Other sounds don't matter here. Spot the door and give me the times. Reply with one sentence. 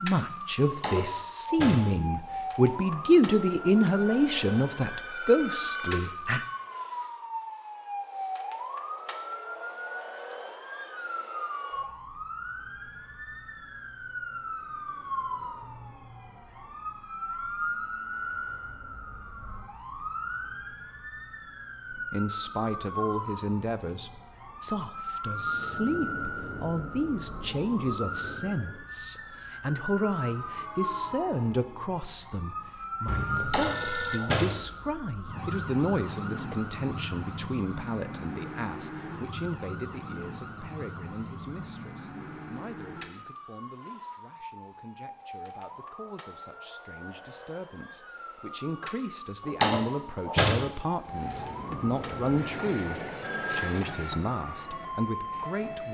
The door can be heard from 0.7 to 1.9 s, from 33.4 to 34.6 s and from 49.5 to 50.7 s.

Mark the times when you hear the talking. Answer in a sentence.
The talking can be heard from 0.0 to 6.5 s and from 21.9 to 55.9 s.